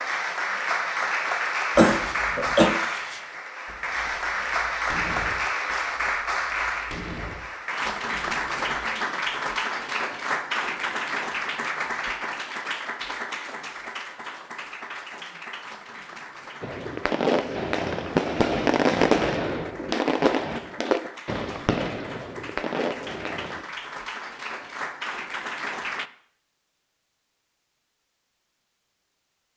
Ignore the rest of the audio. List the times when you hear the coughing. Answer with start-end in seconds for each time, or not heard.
1.8-2.8.